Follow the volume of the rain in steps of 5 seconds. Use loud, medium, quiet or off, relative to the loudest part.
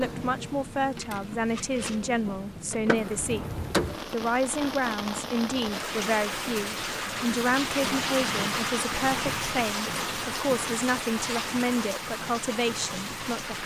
medium, loud, loud.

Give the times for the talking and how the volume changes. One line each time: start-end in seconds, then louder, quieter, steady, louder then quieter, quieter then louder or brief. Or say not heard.
0.0-13.6 steady.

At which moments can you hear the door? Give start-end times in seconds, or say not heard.
2.7-4.2.